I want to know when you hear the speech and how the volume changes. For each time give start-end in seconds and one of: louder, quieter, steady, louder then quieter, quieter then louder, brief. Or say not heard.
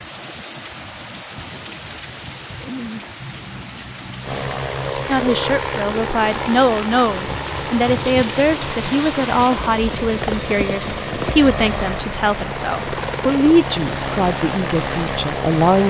5.0-15.8 steady.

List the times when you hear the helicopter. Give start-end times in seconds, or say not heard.
4.2-15.8.